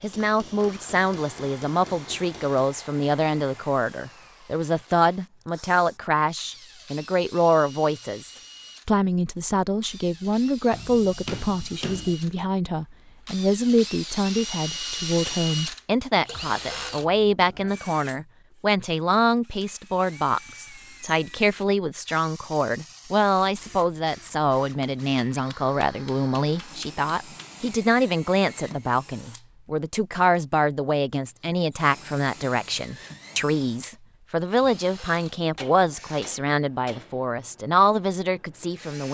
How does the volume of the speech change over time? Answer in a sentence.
The volume of the speech stays about the same.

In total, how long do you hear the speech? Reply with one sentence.
The speech can be heard for 39 seconds in total.